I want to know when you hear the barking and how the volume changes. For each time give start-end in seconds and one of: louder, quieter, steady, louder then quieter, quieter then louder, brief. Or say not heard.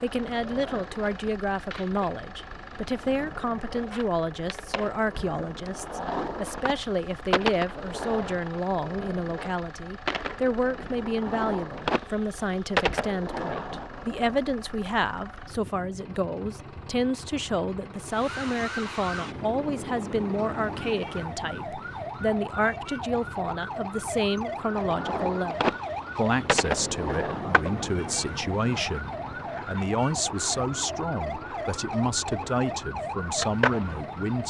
not heard.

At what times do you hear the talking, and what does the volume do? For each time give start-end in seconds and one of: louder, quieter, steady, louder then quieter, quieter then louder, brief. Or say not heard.
0.0-34.4 steady.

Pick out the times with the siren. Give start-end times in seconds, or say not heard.
18.1-34.4.